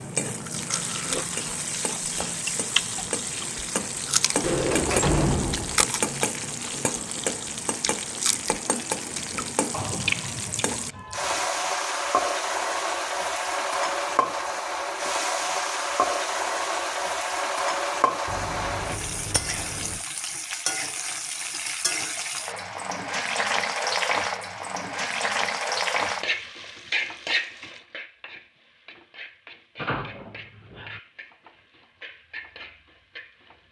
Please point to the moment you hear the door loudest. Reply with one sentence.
The volume of the door peaks at 5 seconds.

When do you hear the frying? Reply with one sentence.
You can hear the frying from 0.0 to 33.6 s.